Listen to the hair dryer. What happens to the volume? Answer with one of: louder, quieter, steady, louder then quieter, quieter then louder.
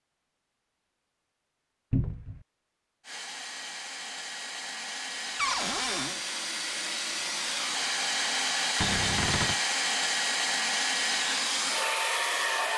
louder.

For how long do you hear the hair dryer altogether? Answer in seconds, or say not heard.
10 s.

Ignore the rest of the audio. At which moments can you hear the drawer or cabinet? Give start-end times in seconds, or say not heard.
1.9-2.4, 5.3-6.2, 8.8-9.6.